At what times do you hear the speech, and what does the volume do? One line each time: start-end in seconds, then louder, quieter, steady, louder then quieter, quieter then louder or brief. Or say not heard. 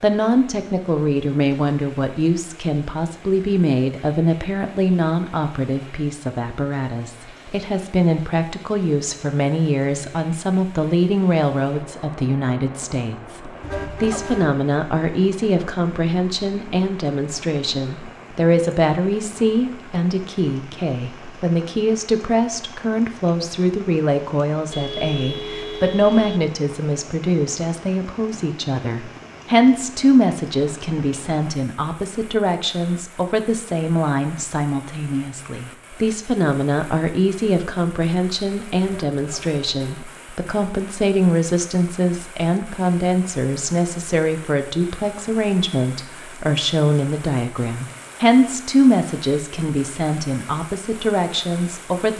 0.0-52.1 steady.